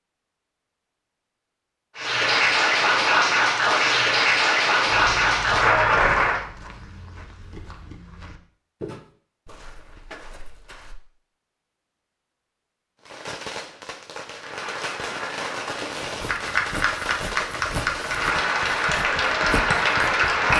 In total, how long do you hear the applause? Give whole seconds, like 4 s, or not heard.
11 s.